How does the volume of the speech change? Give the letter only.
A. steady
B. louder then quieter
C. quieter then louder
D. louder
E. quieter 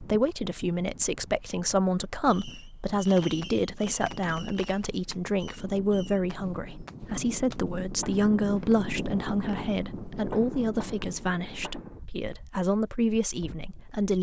A.